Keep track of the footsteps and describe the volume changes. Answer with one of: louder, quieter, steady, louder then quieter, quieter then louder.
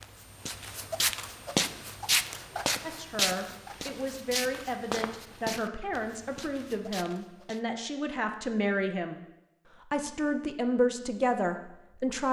quieter.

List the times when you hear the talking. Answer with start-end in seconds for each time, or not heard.
2.8-12.2.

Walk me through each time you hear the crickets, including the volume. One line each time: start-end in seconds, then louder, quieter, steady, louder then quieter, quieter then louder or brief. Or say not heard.
not heard.